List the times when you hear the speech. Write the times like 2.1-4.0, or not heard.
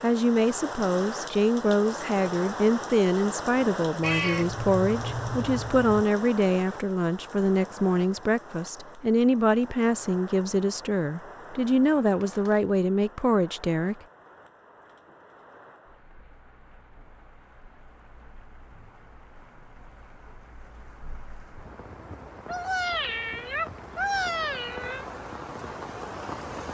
0.0-13.9.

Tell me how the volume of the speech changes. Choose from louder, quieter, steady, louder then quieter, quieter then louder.
steady.